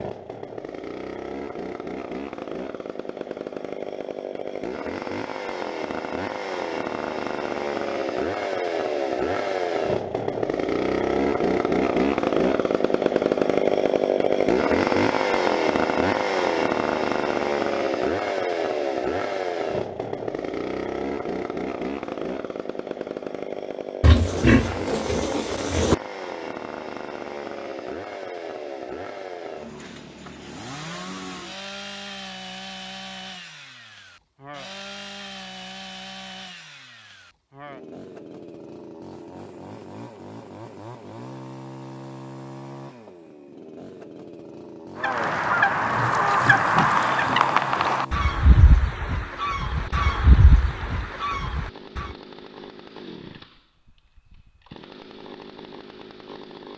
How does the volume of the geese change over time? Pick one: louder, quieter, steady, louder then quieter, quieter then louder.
quieter.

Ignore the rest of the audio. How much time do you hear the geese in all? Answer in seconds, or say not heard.
7 s.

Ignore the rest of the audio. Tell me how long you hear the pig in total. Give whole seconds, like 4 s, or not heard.
4 s.